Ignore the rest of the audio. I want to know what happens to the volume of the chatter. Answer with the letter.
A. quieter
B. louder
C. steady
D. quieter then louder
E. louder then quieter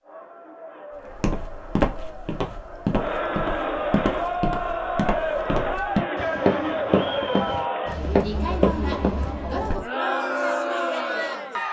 B.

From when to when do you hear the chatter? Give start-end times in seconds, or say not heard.
0.0-11.6.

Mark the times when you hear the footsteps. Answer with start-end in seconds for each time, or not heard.
1.1-9.8.